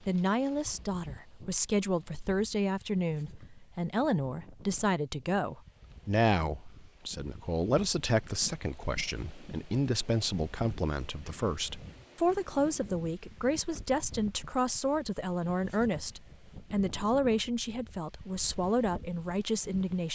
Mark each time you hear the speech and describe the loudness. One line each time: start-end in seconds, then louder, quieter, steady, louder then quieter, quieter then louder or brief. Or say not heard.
0.1-20.0 steady.